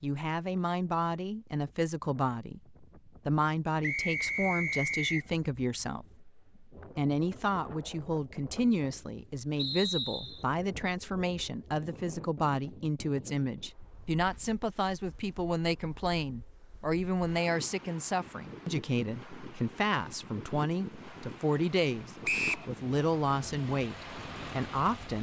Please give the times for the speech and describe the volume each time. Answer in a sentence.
The speech can be heard from 0.0 to 25.1 s, at a steady volume.